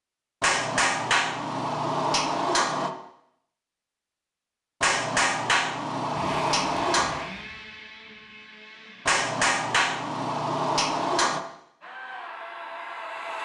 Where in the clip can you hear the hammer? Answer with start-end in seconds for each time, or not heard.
0.4-2.9, 4.8-7.3, 9.1-11.4.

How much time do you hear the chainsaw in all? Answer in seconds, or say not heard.
5 s.